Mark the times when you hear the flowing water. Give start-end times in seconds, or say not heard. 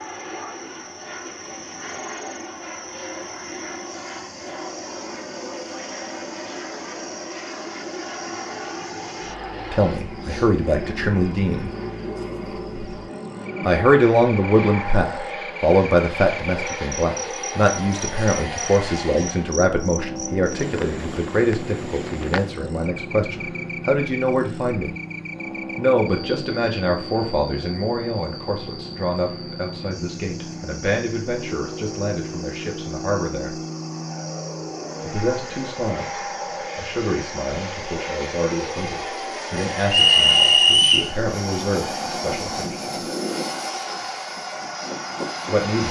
not heard.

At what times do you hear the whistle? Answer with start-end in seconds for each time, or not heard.
39.9-41.1.